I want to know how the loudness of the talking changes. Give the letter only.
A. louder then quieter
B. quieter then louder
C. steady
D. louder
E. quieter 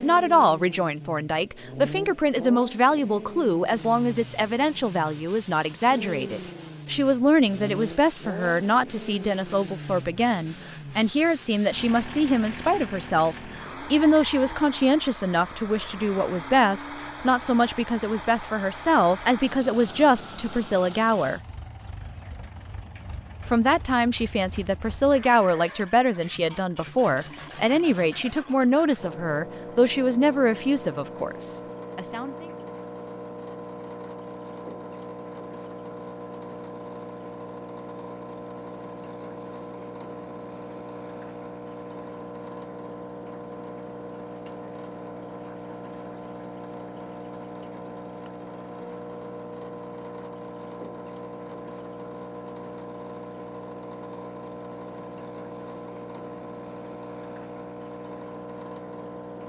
C.